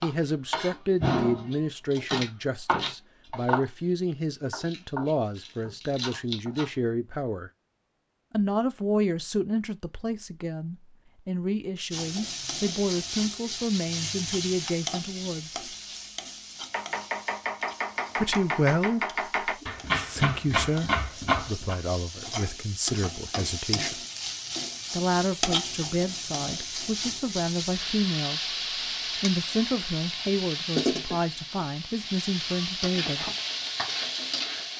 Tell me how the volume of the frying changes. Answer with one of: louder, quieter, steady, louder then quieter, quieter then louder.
quieter then louder.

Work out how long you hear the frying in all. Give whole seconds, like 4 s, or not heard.
23 s.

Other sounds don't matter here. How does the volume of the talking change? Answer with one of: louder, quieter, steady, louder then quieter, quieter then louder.
steady.